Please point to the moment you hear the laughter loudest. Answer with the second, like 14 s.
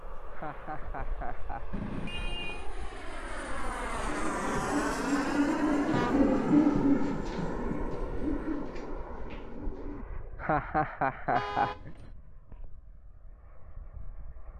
11 s.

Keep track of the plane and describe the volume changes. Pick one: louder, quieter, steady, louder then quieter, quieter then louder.
louder then quieter.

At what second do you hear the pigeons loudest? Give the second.
7 s.